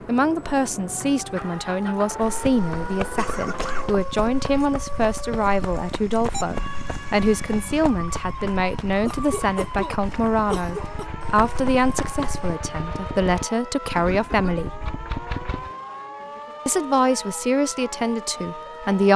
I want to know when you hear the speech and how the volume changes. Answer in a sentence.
You can hear the speech from 0.1 to 14.7 s, at a steady volume; and briefly from 16.6 to 19.1 s.